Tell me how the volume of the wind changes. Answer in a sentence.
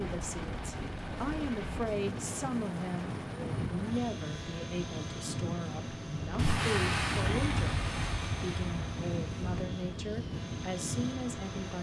The loudness of the wind stays about the same.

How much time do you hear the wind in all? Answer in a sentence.
You can hear the wind for 12 seconds altogether.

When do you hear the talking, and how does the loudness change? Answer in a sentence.
The talking can be heard from 0.0 to 11.7 s, at a steady volume.